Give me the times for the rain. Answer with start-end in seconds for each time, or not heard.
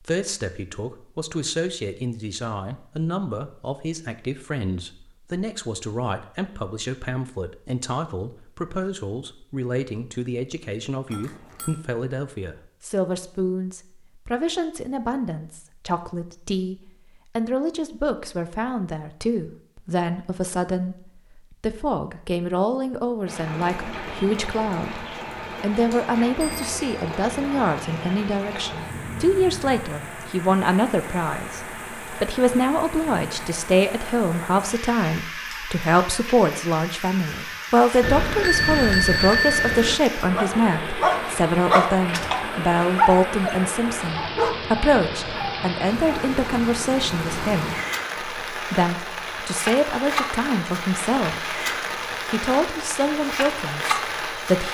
23.2-54.7.